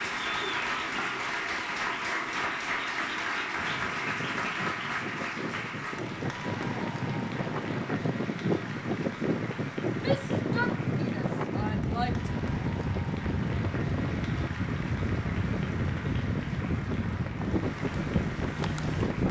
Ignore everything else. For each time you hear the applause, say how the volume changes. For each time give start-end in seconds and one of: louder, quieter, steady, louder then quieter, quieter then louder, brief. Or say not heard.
0.0-19.2 quieter.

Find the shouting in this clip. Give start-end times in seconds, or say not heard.
9.9-12.3.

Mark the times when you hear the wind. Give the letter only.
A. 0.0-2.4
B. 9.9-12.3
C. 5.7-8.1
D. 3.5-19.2
D.